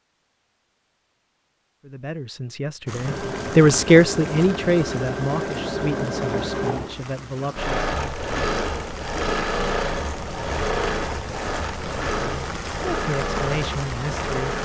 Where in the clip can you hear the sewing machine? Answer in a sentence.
You can hear the sewing machine from 3.0 to 14.6 s.